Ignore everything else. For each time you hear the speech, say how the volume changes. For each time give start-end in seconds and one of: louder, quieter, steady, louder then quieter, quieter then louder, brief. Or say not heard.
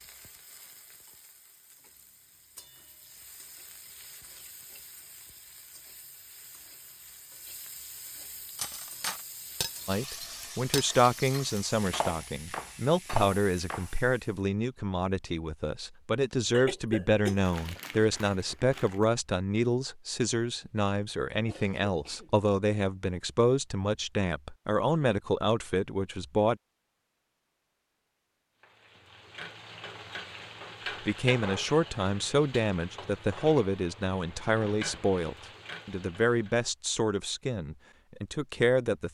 9.8-26.6 steady
31.1-39.0 quieter.